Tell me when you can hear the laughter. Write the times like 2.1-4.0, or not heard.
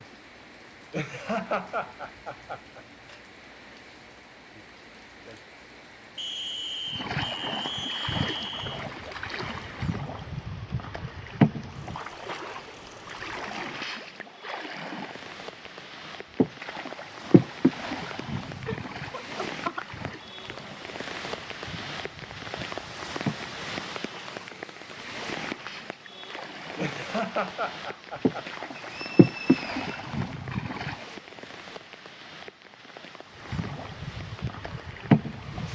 0.9-2.8, 18.6-19.9, 26.8-28.4.